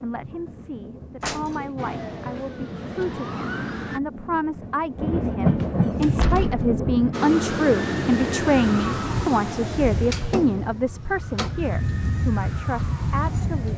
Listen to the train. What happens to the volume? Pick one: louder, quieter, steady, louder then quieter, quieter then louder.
louder.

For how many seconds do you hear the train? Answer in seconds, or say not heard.
7 s.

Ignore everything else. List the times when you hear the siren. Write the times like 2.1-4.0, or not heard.
1.8-4.0, 7.1-13.7.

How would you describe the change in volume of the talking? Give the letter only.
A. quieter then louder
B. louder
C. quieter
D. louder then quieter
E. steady
D.